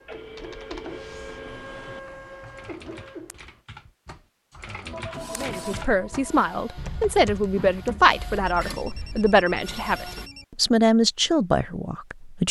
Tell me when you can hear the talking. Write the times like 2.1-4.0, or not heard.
5.3-12.4.